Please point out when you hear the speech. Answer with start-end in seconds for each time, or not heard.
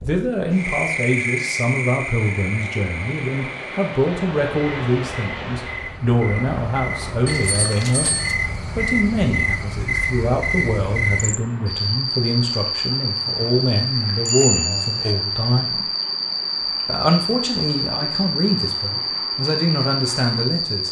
0.0-15.8, 16.9-20.8.